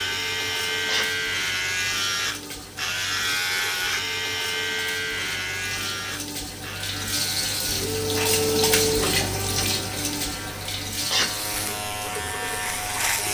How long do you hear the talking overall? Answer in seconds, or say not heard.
not heard.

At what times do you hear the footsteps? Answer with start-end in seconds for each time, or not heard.
not heard.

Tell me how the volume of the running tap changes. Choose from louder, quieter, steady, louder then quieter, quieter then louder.
louder then quieter.